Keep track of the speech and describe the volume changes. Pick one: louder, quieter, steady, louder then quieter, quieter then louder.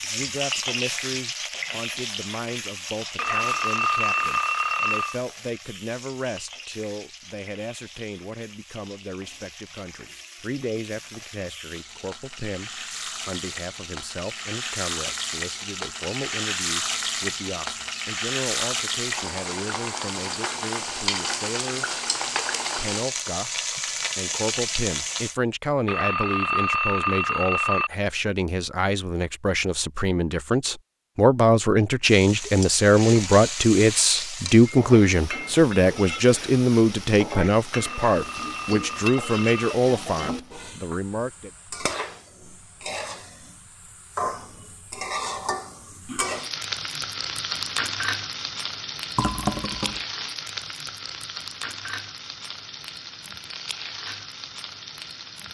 louder.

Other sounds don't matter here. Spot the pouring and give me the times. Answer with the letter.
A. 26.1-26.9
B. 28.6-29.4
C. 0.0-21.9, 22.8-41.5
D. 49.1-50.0
D.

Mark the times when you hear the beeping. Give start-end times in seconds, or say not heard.
3.1-5.2, 25.9-27.9, 37.7-39.8.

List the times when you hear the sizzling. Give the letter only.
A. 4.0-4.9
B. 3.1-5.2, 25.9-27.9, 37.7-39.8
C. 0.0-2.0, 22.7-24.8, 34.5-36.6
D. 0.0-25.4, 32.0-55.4
D.